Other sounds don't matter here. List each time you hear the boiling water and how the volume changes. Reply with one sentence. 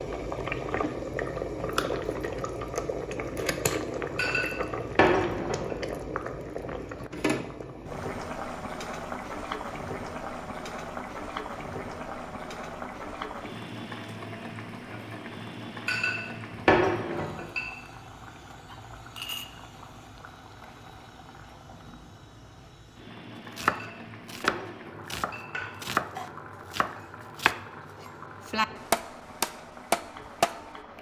The boiling water can be heard from 0.0 to 30.9 s, getting quieter.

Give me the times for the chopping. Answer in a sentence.
The chopping can be heard from 23.6 to 30.8 s.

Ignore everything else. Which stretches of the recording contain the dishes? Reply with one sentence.
The dishes can be heard from 4.2 to 5.8 s, from 15.8 to 17.6 s and from 23.6 to 25.7 s.